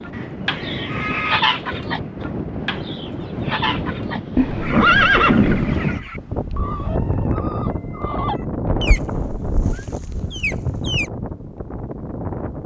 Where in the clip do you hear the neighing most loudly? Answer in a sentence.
The loudest moment of the neighing is at 5 seconds.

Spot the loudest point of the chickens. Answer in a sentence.
The volume of the chickens peaks at 1 second.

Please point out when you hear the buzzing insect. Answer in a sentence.
The buzzing insect can't be heard in this clip.